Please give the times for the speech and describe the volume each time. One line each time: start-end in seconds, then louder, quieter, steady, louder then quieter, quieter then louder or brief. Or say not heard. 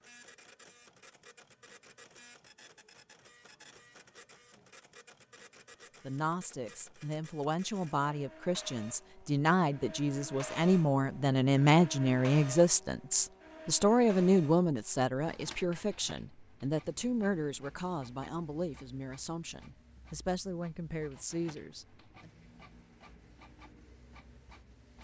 6.0-22.3 louder then quieter.